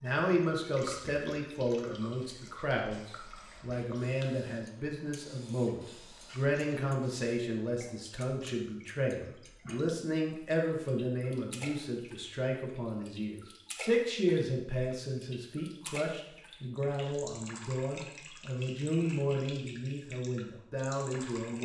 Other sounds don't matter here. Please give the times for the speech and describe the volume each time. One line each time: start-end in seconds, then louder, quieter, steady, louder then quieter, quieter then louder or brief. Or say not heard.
0.0-21.6 steady.